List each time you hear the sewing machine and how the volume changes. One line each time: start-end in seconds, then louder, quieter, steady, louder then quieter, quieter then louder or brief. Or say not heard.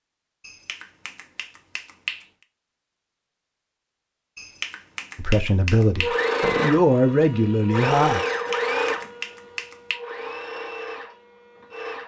6.0-12.0 quieter.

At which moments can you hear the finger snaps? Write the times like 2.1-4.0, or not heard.
0.4-2.2, 4.3-6.2, 8.2-10.0.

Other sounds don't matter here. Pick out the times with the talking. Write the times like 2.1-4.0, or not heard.
5.2-8.2.